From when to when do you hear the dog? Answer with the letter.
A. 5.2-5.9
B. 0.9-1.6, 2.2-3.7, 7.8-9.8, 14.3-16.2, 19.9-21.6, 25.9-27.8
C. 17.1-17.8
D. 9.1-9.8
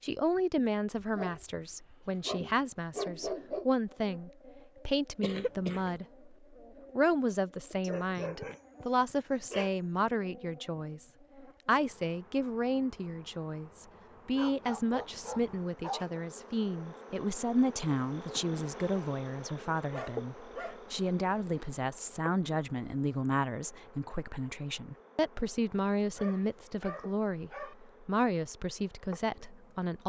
B.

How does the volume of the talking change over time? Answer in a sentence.
The volume of the talking stays about the same.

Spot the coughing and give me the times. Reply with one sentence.
The coughing can be heard from 5.2 to 5.9 s.